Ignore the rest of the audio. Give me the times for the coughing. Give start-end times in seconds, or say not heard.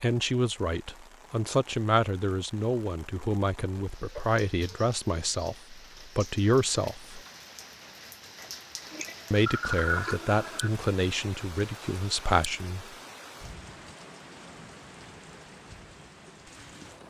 4.0-4.9, 8.9-10.7.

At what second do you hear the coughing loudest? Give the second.
10 s.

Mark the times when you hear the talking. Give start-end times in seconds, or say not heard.
0.0-7.2, 9.3-12.8.